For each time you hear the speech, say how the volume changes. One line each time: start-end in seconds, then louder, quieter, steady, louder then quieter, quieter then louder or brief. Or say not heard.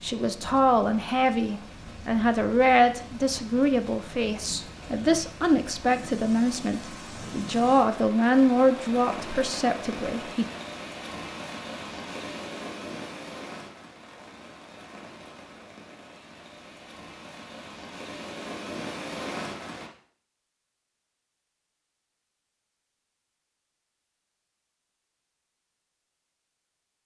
0.0-10.4 steady.